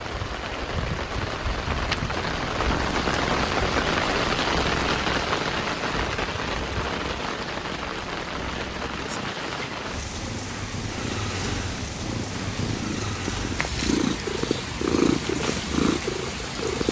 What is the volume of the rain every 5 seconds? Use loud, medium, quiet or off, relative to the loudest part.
loud, loud, medium, medium.